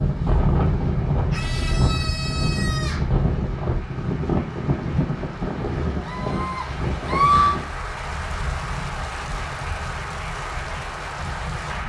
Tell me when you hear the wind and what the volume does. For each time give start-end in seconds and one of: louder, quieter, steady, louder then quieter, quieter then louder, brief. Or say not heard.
0.0-11.8 quieter.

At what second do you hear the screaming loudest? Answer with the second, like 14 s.
7 s.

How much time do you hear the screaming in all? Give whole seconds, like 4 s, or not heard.
3 s.